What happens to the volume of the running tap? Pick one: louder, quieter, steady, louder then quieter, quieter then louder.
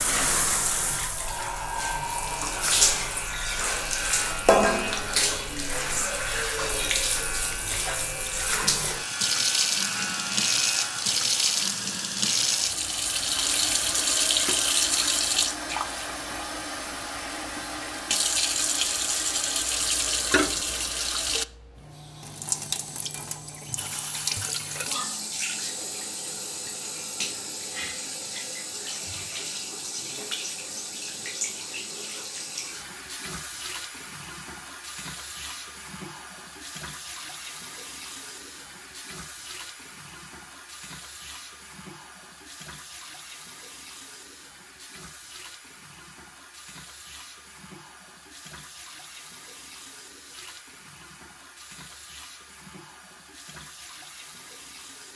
quieter.